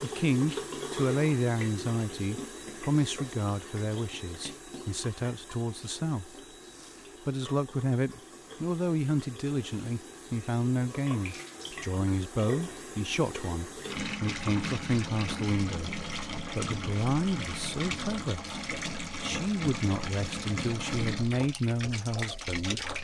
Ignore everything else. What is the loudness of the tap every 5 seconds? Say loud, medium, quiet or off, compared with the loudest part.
loud, quiet, loud, loud, loud.